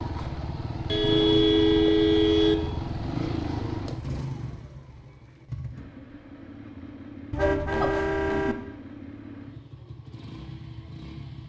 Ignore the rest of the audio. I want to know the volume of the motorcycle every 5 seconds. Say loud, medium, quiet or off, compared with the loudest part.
loud, medium, medium.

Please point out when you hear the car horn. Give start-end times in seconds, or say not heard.
0.8-2.5, 7.3-8.6.